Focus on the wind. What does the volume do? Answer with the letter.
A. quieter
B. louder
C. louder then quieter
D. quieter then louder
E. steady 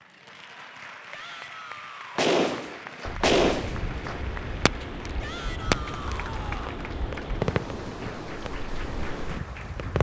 E.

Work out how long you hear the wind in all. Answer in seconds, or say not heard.
7 s.